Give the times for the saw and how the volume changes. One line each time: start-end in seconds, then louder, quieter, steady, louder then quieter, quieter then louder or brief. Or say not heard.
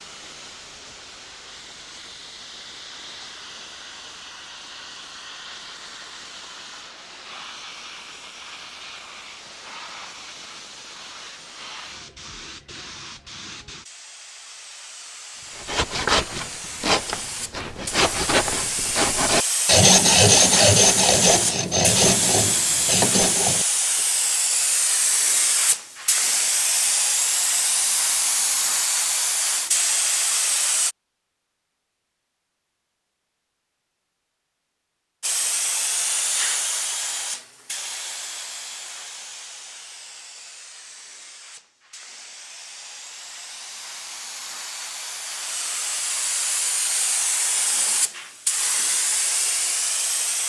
15.5-24.0 louder then quieter.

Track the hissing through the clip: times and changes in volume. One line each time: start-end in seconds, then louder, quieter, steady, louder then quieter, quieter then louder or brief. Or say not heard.
0.0-30.9 louder
35.2-50.4 quieter then louder.